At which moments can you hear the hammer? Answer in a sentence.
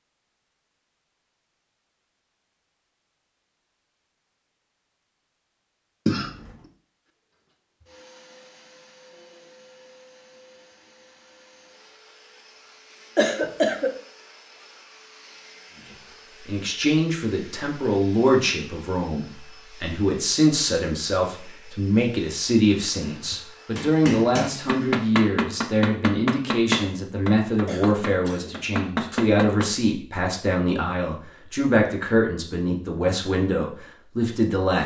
The hammer can be heard from 23.0 to 29.7 s.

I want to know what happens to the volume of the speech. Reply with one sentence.
The loudness of the speech stays about the same.